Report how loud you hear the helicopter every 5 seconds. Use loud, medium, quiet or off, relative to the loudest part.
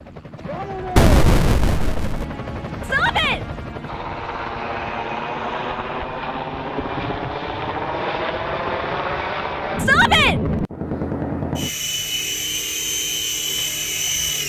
medium, loud, loud.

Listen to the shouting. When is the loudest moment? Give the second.
10 s.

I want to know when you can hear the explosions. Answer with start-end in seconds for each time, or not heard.
0.9-2.2.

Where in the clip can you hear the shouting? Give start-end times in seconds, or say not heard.
2.8-3.4, 9.8-10.4.